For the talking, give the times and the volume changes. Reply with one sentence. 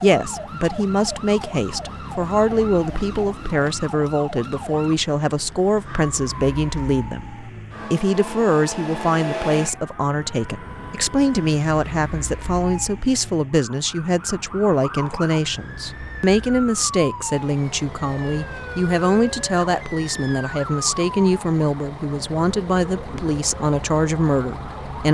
You can hear the talking from 0.0 to 25.0 s, at a steady volume.